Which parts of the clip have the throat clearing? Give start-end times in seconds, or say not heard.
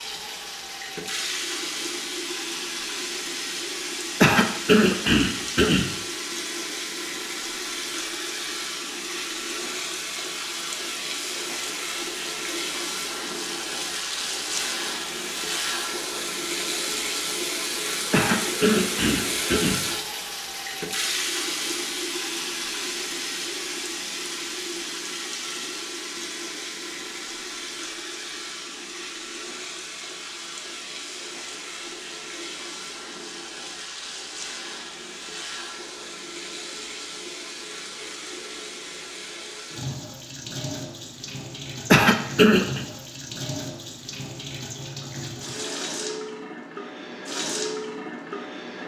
4.2-5.9, 18.1-19.8, 41.9-42.9.